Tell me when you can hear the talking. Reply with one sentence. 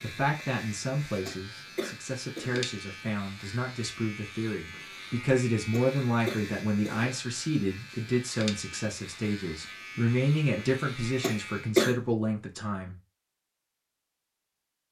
The talking can be heard from 0.0 to 12.9 s.